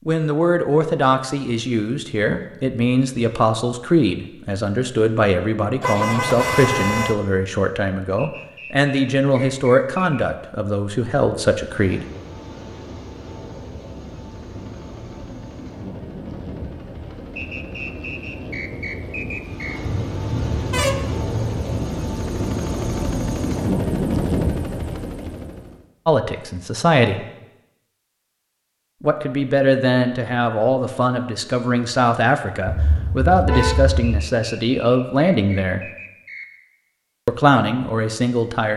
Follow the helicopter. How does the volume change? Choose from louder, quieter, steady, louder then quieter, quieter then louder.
louder.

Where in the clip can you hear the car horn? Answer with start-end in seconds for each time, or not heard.
5.8-7.2, 19.8-21.9, 32.6-34.3.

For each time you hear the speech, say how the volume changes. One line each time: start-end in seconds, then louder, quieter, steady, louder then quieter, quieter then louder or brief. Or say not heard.
0.1-12.1 steady
26.1-27.2 brief
29.0-35.8 steady
37.2-38.7 brief.